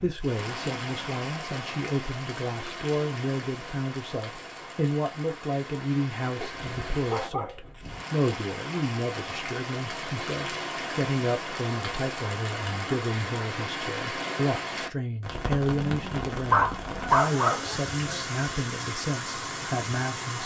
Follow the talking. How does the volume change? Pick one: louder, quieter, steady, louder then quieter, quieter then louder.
steady.